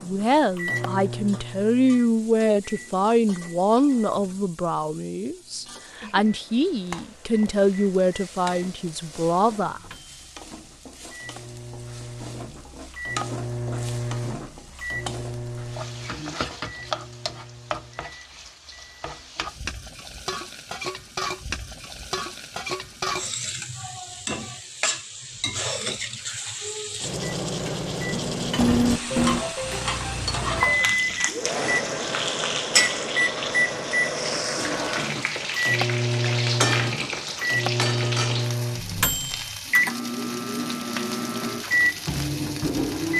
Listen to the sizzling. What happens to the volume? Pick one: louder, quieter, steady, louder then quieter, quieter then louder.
louder.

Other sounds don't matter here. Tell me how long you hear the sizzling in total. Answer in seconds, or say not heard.
43 s.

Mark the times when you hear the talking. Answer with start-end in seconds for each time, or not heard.
0.0-9.8.